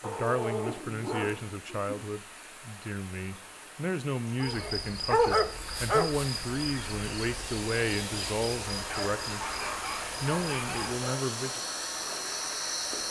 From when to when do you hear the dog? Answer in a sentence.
The dog can be heard from 0.0 to 1.9 s, from 4.4 to 6.1 s and from 8.8 to 11.2 s.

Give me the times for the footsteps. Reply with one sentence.
You can't hear the footsteps here.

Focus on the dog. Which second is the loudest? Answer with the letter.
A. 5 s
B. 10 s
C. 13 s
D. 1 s
A.